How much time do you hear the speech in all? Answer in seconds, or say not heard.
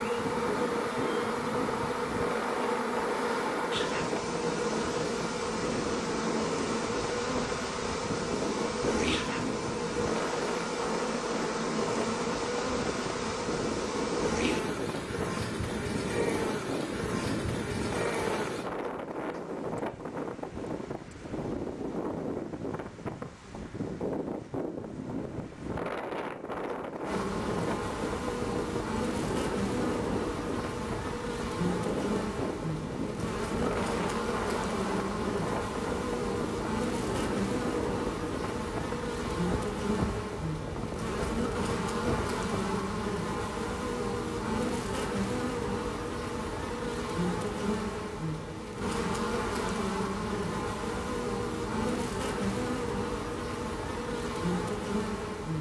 not heard.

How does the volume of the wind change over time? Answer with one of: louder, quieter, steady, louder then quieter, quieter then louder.
steady.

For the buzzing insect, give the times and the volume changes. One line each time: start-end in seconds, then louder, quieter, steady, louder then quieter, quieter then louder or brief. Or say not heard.
0.0-18.7 steady
27.0-55.5 steady.